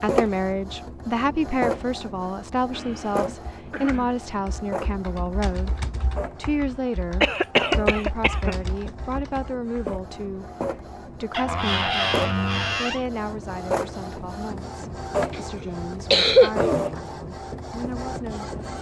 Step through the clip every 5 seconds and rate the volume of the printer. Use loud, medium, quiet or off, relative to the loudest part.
loud, medium, loud, loud.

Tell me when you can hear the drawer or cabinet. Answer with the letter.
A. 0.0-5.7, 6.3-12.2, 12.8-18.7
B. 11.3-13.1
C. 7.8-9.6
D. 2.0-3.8
B.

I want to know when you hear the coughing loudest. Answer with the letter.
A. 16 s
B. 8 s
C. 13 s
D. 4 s
A.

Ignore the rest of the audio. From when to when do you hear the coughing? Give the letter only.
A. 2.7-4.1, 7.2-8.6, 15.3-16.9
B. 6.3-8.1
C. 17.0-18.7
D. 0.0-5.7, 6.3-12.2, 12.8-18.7
A.